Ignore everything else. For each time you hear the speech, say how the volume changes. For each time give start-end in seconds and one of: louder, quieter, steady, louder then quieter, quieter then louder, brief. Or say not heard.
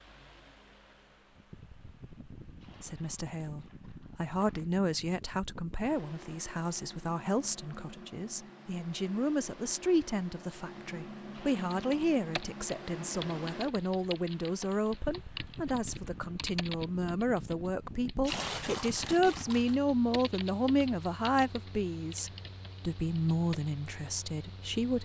2.8-24.9 steady.